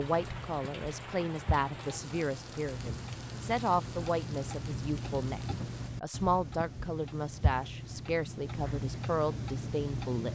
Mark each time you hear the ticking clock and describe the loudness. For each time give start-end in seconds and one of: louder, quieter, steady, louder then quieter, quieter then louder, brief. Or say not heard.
0.0-10.3 louder.